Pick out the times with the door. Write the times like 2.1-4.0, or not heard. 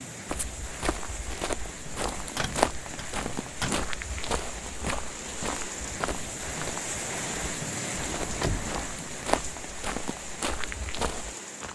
2.4-4.0, 8.0-8.9.